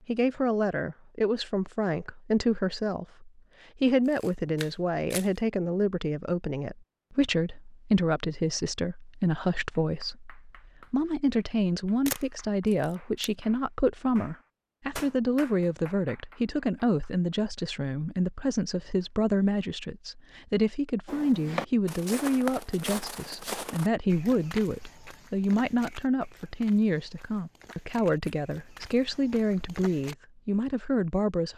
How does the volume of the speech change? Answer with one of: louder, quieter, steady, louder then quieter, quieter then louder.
steady.